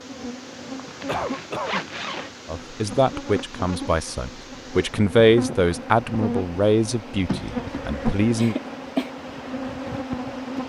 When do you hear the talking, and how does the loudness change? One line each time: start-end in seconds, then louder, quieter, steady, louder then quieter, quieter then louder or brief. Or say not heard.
2.5-8.6 louder then quieter.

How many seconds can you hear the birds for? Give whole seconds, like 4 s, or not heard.
not heard.